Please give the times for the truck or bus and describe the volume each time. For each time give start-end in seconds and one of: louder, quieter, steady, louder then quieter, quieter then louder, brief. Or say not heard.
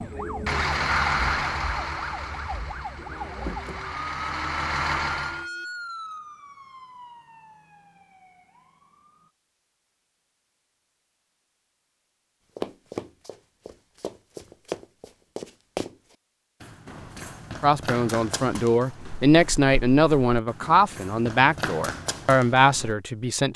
0.0-5.5 quieter then louder.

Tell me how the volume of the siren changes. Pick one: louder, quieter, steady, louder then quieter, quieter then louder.
quieter.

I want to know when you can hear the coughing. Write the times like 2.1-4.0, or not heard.
not heard.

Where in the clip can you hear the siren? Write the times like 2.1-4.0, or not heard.
0.0-9.3.